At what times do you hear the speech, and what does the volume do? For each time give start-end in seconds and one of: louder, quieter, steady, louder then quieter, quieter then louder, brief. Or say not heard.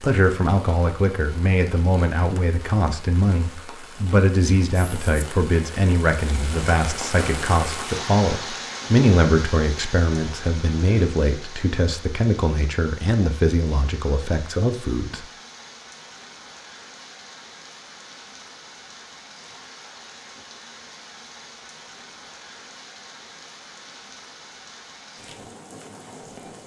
0.0-15.2 steady.